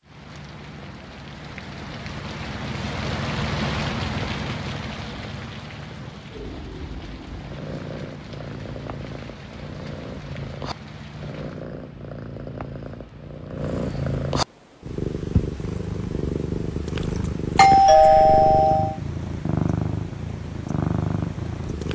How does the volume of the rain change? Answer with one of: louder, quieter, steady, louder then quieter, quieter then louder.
louder then quieter.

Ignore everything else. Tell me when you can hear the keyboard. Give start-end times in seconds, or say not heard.
not heard.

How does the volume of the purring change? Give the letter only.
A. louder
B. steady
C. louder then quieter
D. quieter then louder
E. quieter
A.